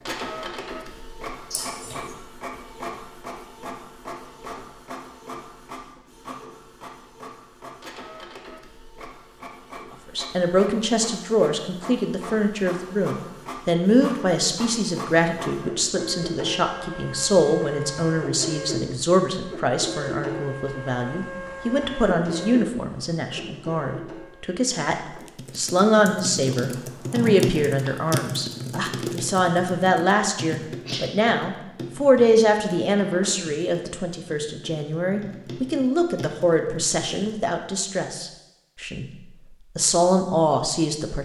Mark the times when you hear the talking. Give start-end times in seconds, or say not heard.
10.2-24.9, 25.6-39.0, 39.8-41.2.